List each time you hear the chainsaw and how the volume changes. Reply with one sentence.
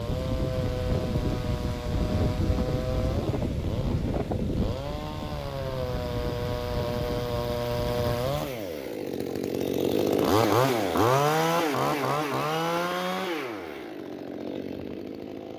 The chainsaw can be heard from 0.0 to 15.5 s, getting louder then quieter.